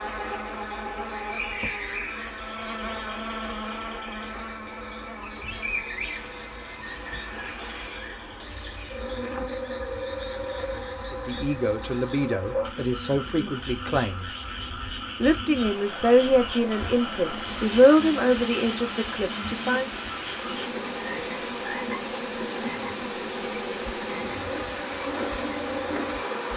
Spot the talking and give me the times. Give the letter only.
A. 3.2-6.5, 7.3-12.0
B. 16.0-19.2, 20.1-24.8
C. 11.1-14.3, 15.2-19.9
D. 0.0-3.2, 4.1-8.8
C.